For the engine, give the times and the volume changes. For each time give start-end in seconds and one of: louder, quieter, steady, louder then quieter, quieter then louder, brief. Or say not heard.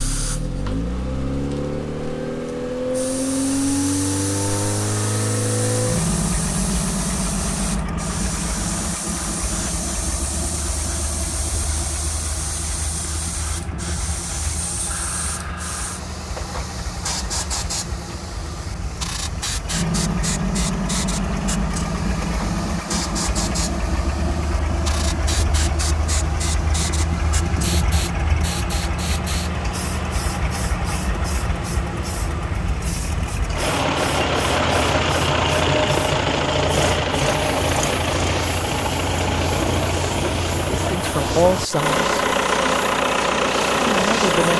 0.0-44.5 quieter then louder.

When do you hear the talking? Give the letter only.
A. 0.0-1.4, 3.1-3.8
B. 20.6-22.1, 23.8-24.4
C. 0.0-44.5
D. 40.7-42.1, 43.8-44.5
D.